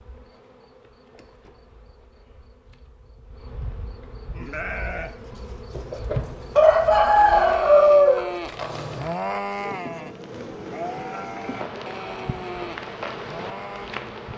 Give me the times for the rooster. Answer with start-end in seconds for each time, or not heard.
5.7-9.1.